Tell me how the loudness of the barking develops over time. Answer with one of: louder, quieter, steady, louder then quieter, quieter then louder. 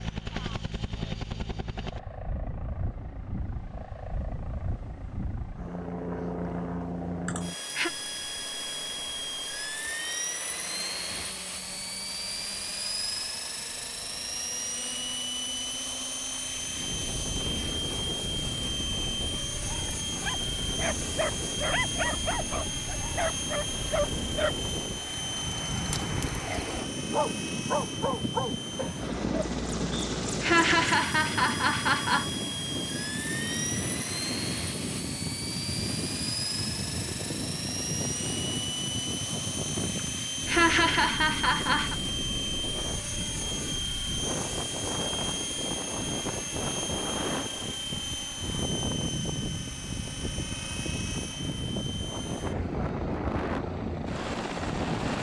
steady.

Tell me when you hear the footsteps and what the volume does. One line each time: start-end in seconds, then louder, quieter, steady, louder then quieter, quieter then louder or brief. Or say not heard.
not heard.